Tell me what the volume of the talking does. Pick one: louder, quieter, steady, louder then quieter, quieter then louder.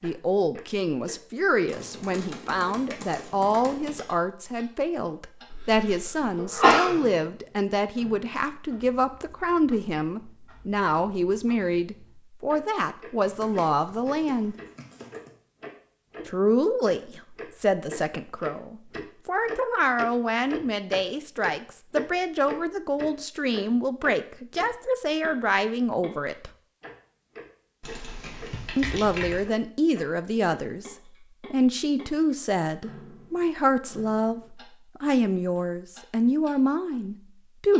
steady.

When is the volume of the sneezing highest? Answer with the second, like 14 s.
7 s.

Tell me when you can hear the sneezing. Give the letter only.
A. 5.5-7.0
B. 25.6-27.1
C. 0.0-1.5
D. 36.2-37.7
A.